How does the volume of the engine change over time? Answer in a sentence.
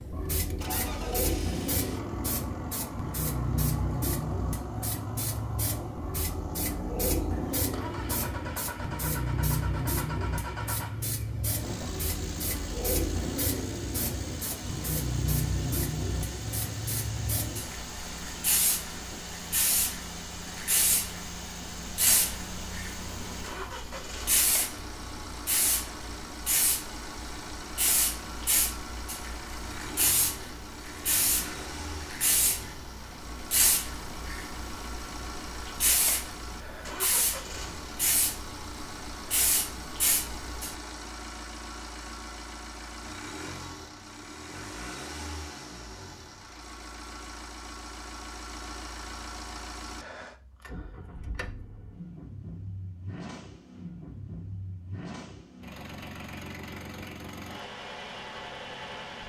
The volume of the engine stays about the same.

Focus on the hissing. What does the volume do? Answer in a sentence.
The volume of the hissing stays about the same.